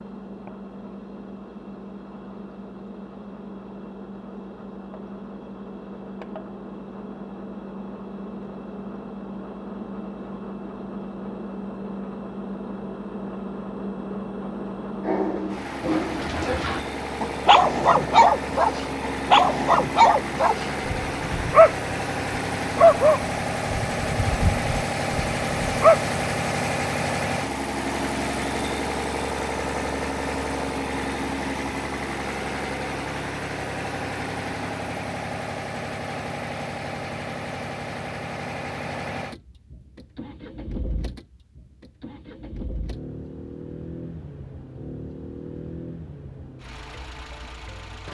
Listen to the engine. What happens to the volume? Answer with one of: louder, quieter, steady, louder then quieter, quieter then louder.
louder then quieter.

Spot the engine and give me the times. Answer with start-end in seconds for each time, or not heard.
0.0-48.0.